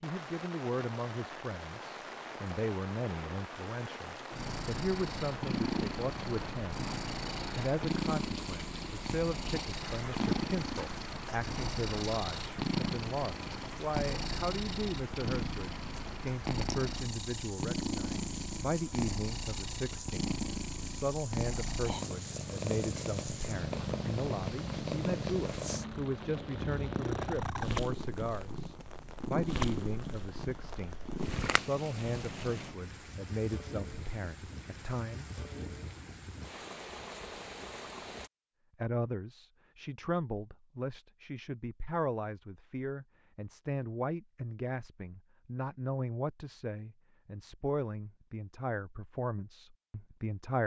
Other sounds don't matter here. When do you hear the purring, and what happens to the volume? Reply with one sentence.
You can hear the purring from 4.3 to 32.8 s, at a steady volume.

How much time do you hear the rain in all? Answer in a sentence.
The rain can be heard for 38 seconds in total.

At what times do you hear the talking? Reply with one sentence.
The talking can be heard from 0.0 to 6.8 s, from 7.5 to 35.2 s and from 38.8 to 50.6 s.